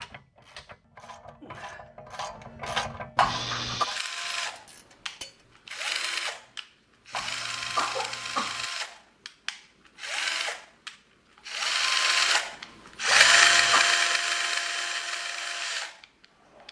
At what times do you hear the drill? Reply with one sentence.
You can hear the drill from 3.2 to 16.6 s.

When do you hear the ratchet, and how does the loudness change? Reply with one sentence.
The ratchet can be heard from 0.0 to 5.5 s, getting louder then quieter.